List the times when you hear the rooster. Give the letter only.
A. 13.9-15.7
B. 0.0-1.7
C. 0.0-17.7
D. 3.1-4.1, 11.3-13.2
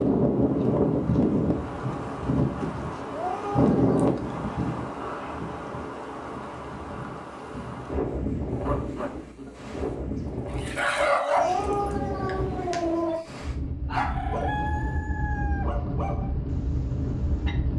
A.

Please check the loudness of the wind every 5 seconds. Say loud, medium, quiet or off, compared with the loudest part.
loud, medium, medium, medium.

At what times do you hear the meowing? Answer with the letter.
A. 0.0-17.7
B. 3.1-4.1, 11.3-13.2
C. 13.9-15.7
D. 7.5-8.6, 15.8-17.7
B.